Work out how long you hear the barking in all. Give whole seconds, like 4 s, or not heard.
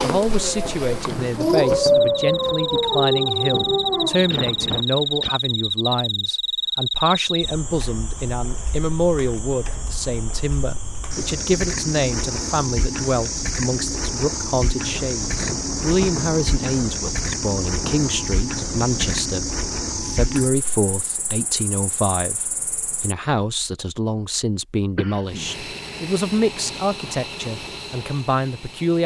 5 s.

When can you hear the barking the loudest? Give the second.
2 s.